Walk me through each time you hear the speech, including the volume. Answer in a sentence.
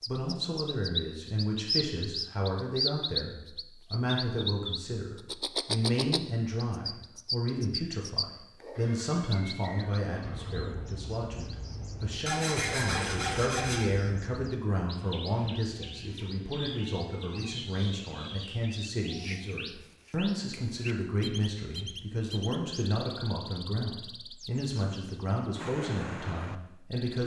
You can hear the speech from 0.1 to 27.2 s, at a steady volume.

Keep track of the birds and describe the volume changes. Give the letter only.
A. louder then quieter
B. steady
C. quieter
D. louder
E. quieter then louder
C.